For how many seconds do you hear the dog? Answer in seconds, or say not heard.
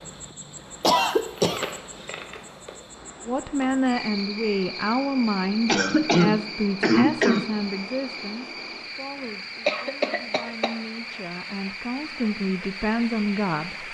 not heard.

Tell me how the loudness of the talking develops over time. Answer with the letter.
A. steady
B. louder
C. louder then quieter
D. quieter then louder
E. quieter
D.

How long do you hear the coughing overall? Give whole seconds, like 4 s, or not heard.
4 s.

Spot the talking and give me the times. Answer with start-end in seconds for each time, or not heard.
3.2-13.8.